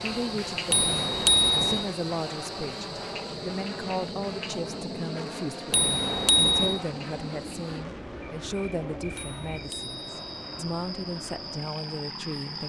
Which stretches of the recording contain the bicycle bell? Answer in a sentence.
The bicycle bell can be heard from 0.7 to 1.9 s, from 5.7 to 6.8 s and from 9.2 to 10.7 s.